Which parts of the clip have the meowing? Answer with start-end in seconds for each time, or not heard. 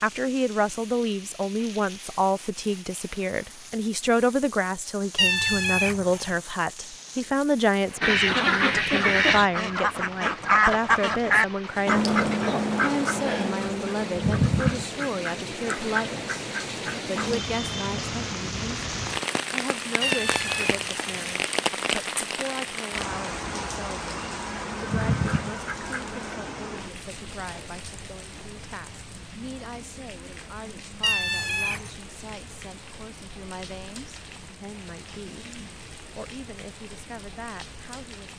5.2-6.3, 20.0-21.4, 31.0-31.9.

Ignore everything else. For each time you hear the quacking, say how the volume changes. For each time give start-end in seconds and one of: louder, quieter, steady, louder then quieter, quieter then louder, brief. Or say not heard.
8.0-17.4 quieter
24.4-26.4 brief.